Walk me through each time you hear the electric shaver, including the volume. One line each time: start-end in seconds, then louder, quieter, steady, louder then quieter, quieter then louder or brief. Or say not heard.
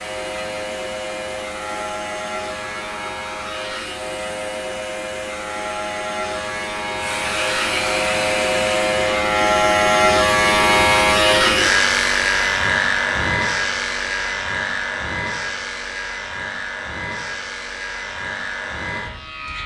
0.0-19.6 louder then quieter.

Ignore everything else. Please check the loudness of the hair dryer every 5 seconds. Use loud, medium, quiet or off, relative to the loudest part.
medium, loud, off, off.